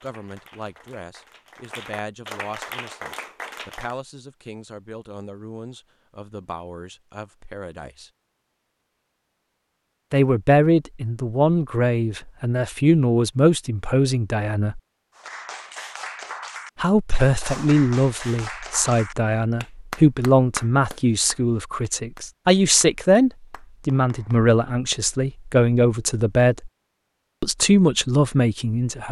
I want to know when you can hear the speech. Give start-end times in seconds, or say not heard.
0.0-8.1, 10.1-14.8, 16.8-26.7, 27.4-29.0.